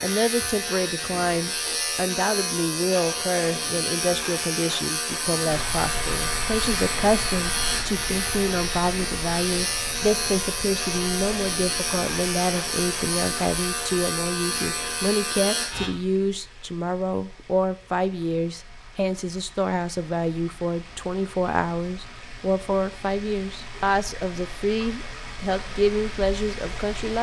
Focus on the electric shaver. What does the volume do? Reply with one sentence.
The volume of the electric shaver stays about the same.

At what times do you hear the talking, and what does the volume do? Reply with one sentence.
The talking can be heard from 0.0 to 27.1 s, at a steady volume.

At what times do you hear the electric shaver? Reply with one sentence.
You can hear the electric shaver from 0.0 to 15.9 s.